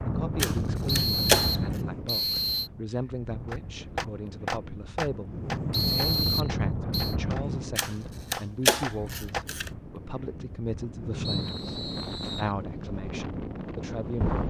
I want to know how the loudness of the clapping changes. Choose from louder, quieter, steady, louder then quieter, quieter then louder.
quieter then louder.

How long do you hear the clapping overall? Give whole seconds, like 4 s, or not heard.
6 s.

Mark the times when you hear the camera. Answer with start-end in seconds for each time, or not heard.
0.3-1.6, 7.8-9.7.